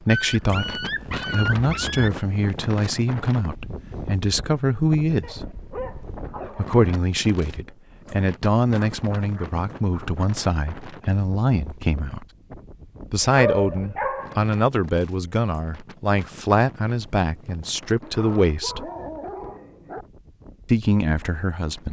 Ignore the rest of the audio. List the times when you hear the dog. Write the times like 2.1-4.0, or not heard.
0.1-2.1, 5.2-6.8, 8.9-10.2, 13.2-14.4, 18.0-20.1.